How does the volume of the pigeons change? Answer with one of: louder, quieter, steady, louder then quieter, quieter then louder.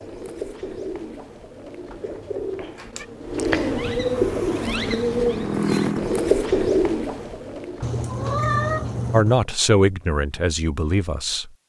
louder.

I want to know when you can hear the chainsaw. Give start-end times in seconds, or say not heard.
4.0-6.3.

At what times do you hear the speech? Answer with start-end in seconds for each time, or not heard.
9.1-11.6.